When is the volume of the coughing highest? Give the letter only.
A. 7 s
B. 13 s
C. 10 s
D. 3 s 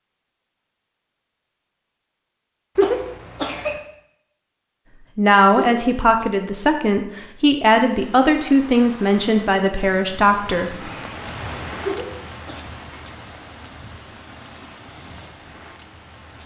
D.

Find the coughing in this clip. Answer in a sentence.
The coughing can be heard from 2.8 to 3.8 s, from 5.5 to 6.0 s and from 11.8 to 12.7 s.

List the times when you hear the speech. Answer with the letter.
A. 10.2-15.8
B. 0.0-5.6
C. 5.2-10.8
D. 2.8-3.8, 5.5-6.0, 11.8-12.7
C.